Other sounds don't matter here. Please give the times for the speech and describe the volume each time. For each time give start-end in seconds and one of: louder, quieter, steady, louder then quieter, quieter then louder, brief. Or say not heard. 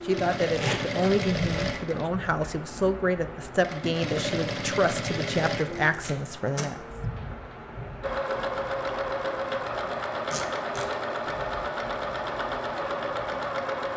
0.1-6.8 steady.